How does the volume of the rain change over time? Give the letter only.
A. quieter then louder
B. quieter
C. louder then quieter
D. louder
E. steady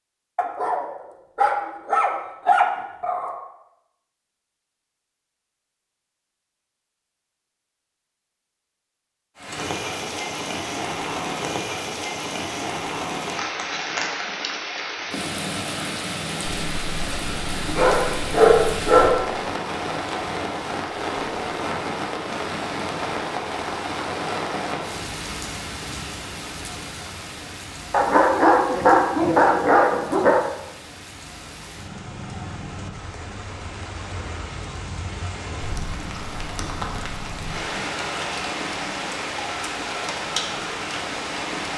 A.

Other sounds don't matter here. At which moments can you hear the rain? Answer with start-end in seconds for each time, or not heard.
9.3-41.7.